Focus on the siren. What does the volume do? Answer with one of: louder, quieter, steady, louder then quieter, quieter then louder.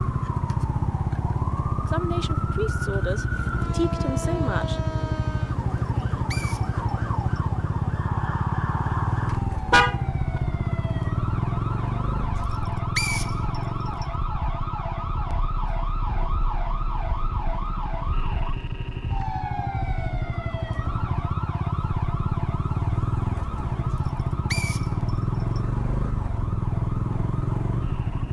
quieter.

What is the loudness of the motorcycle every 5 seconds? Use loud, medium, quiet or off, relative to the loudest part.
loud, loud, loud, medium, loud, loud.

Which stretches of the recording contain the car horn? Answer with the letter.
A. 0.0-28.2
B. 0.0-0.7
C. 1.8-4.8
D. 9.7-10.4
D.